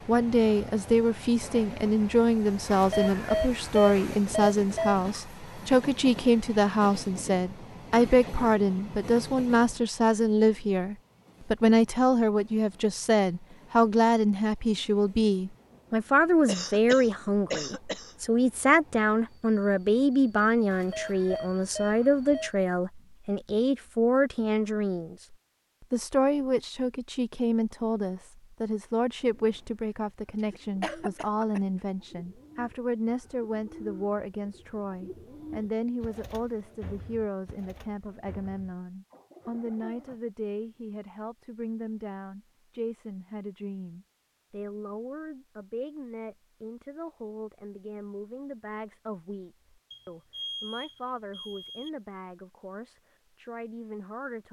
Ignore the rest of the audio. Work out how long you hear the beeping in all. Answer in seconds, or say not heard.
6 s.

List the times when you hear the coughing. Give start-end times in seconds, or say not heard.
16.4-18.1, 30.8-31.6.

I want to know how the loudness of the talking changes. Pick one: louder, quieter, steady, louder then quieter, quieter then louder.
quieter.